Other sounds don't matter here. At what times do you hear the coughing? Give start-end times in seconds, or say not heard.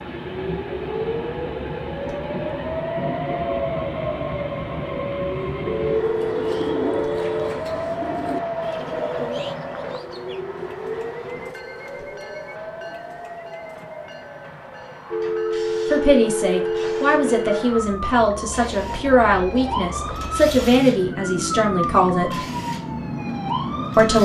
not heard.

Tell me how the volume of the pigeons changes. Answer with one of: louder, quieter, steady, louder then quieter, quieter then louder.
quieter.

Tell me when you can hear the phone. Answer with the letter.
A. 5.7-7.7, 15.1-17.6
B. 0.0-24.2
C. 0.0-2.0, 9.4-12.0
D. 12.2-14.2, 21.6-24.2
A.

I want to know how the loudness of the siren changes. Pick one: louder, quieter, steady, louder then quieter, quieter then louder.
quieter then louder.